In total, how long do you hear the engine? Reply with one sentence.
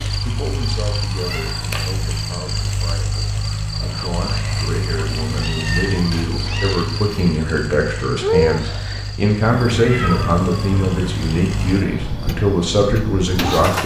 You can hear the engine for 14 seconds altogether.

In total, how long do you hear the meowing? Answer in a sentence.
You can hear the meowing for 4 seconds altogether.